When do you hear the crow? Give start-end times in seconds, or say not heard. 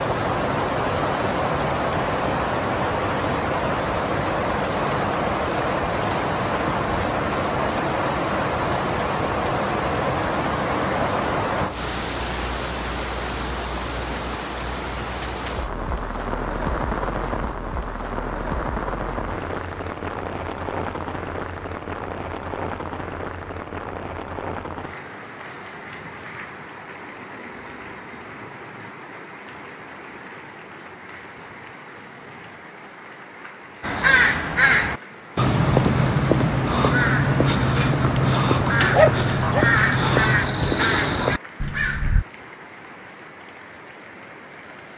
33.8-42.2.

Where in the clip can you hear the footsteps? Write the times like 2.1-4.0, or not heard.
not heard.